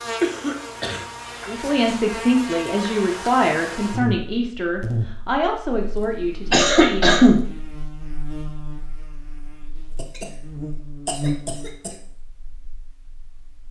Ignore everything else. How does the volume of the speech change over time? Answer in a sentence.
The volume of the speech goes down.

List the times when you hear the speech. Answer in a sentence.
You can hear the speech from 1.4 to 7.2 s.